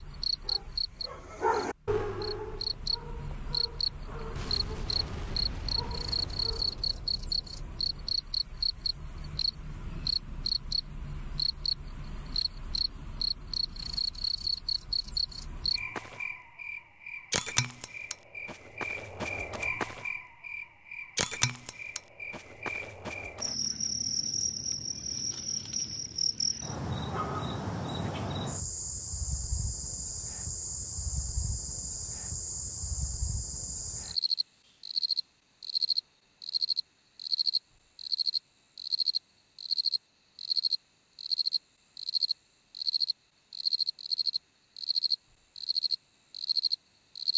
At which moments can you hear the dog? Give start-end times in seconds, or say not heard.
0.4-6.8.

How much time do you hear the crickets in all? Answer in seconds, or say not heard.
47 s.